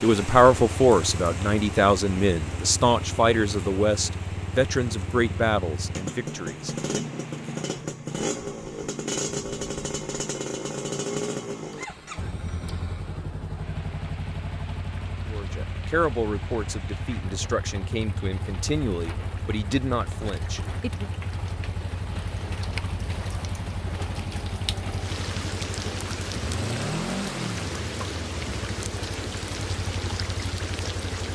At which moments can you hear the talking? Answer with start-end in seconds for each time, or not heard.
0.0-7.1, 15.2-21.1.